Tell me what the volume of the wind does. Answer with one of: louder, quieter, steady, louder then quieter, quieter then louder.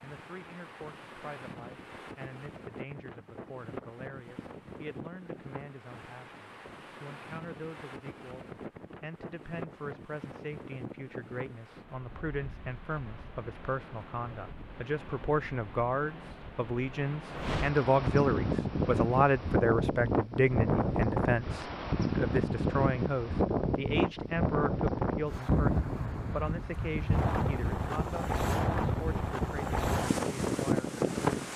louder.